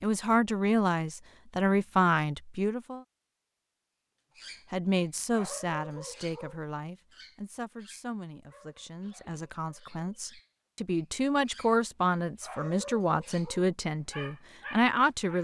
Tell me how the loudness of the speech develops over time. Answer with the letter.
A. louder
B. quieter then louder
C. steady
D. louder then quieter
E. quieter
B.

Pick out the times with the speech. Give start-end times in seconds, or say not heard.
0.0-3.0, 4.7-15.3.